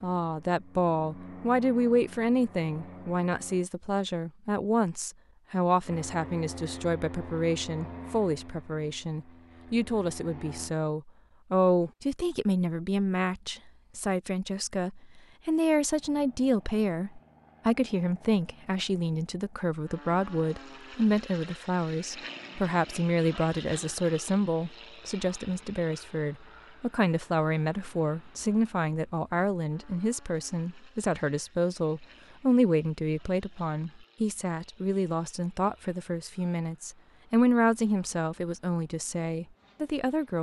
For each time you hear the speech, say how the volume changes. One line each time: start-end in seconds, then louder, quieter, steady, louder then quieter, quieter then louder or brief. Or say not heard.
0.0-40.3 steady.